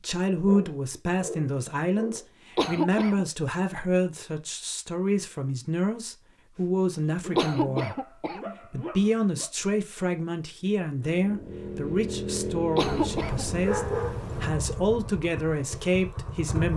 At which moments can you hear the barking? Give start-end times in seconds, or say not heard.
0.5-2.2, 6.5-9.5, 12.8-14.5.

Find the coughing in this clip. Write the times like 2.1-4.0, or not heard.
2.5-3.2, 7.3-8.6, 12.8-13.4.